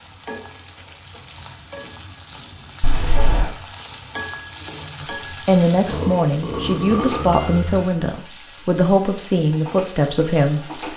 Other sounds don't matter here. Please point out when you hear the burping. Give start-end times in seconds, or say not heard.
2.8-3.5, 5.8-7.8.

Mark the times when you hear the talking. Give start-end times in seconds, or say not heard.
5.0-10.9.